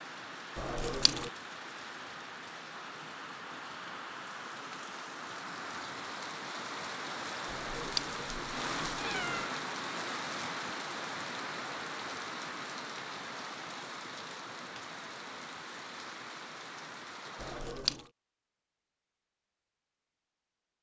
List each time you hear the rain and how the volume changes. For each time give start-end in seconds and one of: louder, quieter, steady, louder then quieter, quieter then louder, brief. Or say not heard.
0.0-17.8 louder then quieter.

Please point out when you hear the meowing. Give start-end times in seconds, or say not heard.
0.6-1.3, 7.5-9.4, 17.4-18.1.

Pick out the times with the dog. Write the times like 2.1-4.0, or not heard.
not heard.